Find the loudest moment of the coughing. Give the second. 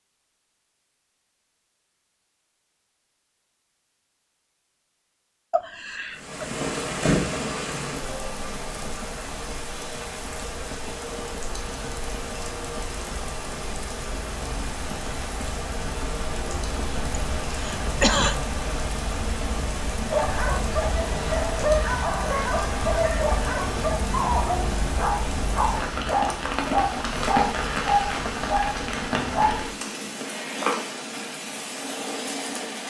18 s.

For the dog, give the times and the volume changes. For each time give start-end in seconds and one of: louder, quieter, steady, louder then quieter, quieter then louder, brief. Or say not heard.
20.1-29.6 steady.